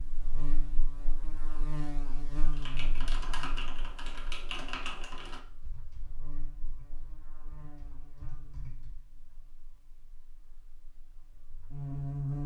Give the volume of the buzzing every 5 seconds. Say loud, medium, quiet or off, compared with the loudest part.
medium, quiet, loud.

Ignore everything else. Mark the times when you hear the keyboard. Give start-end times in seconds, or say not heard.
2.5-8.9.